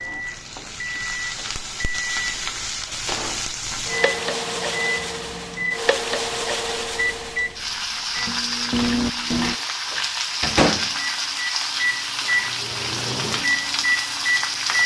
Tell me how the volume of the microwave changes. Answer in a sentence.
The loudness of the microwave goes up.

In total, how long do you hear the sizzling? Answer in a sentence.
The sizzling can be heard for 15 seconds in total.